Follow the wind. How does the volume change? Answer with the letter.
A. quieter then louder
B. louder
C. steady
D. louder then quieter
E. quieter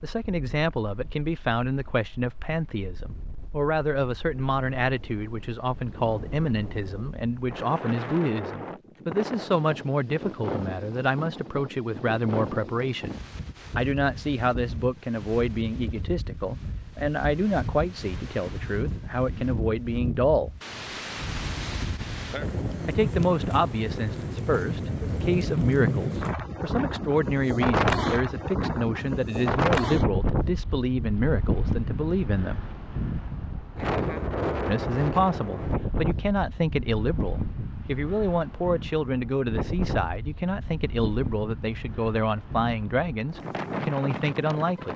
D.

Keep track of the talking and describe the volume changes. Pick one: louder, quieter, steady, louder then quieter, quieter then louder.
steady.